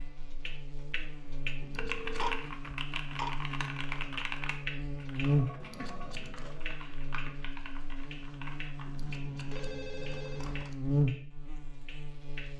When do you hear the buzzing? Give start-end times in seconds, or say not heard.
0.0-12.5.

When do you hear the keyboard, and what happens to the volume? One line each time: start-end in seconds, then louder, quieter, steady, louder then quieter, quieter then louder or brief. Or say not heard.
1.8-9.6 quieter.